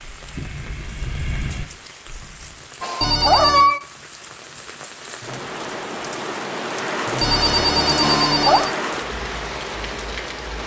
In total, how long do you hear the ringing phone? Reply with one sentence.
You can hear the ringing phone for 2 seconds altogether.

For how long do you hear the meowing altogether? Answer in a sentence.
The meowing can be heard for 2 seconds in total.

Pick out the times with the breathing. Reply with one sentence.
The breathing can be heard from 0.0 to 2.6 s.